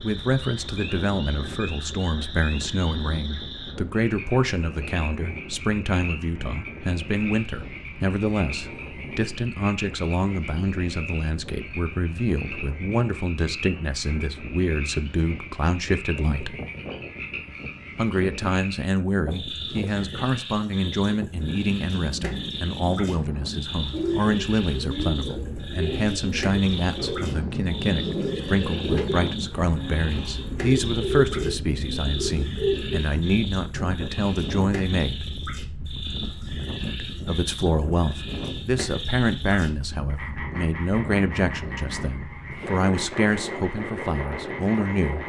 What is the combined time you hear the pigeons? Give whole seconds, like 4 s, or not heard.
9 s.